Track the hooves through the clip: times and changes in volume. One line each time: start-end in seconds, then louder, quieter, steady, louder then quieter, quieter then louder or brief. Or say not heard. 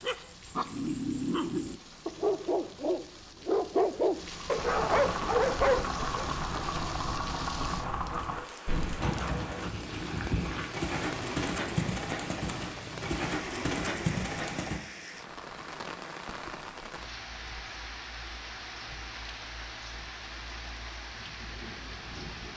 4.5-14.8 steady.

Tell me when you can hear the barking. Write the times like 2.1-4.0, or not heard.
0.0-6.3.